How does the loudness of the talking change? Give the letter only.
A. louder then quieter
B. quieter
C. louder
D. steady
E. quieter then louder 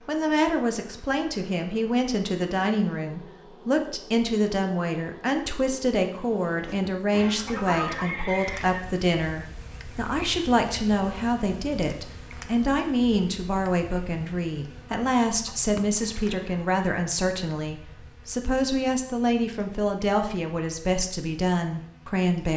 D.